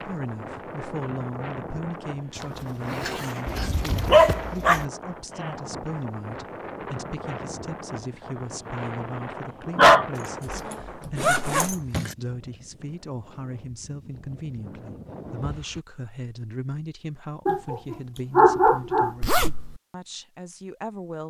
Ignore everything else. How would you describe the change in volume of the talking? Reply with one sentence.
The loudness of the talking stays about the same.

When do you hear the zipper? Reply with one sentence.
The zipper can be heard from 2.4 to 4.3 s, from 10.2 to 12.2 s and from 19.2 to 19.8 s.